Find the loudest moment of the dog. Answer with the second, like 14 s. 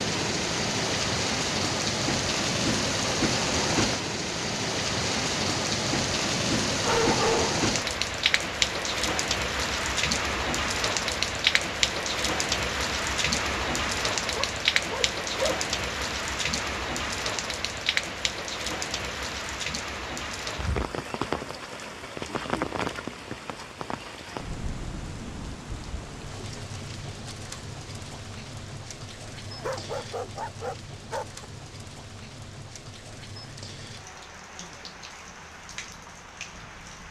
7 s.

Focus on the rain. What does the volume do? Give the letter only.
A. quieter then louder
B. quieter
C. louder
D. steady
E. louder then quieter
B.